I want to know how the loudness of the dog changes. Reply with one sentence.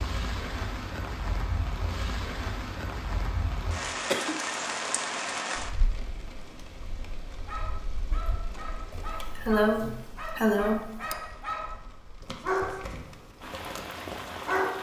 The loudness of the dog goes up, then down.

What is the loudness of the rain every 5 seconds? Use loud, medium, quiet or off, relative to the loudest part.
loud, medium, medium.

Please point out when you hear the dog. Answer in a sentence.
The dog can be heard from 7.4 to 14.7 s.